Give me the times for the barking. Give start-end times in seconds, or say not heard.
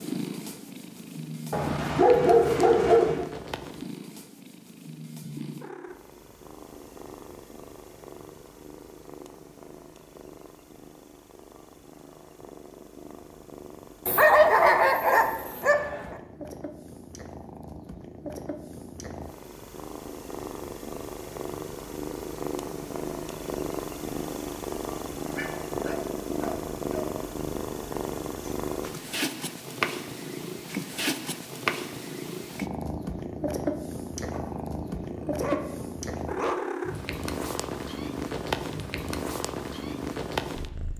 1.5-3.2, 14.1-16.1, 25.4-27.1, 34.3-36.8.